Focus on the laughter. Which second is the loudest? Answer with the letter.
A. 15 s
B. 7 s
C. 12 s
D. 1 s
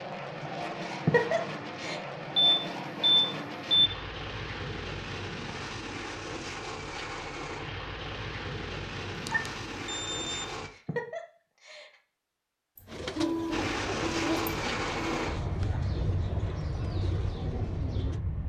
D.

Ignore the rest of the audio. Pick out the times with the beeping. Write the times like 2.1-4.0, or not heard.
2.4-3.9, 9.2-10.4, 12.8-15.2.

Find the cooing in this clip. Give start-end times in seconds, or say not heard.
12.8-18.2.